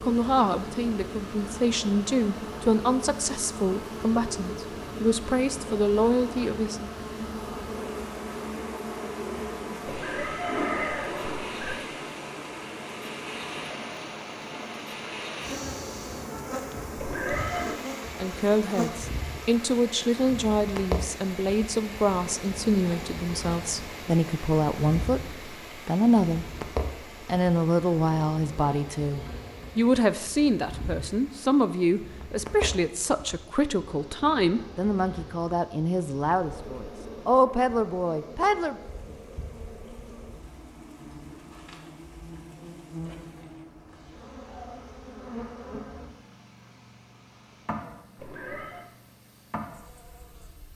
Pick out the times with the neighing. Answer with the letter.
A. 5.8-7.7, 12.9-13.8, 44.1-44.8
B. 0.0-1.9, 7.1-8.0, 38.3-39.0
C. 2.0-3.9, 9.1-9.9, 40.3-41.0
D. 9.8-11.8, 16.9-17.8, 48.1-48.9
D.